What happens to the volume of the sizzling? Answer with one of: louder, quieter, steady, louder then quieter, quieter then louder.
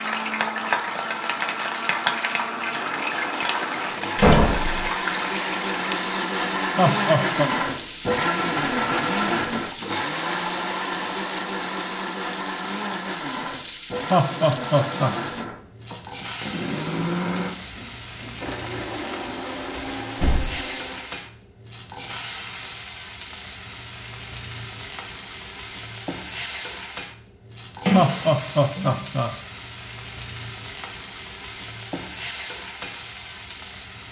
quieter.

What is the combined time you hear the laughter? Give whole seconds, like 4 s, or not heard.
3 s.